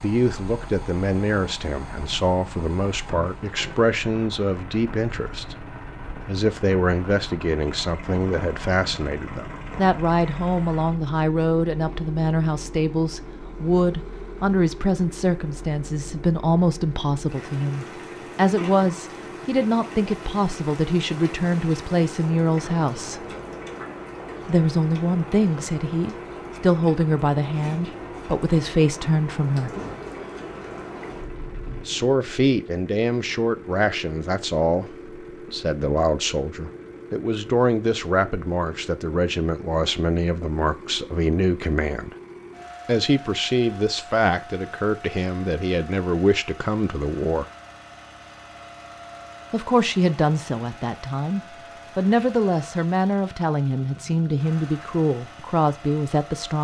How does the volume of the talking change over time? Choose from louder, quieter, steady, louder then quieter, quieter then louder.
steady.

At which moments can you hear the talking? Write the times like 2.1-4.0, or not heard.
0.0-23.2, 24.4-29.7, 31.9-42.1, 42.9-47.5, 49.5-56.5.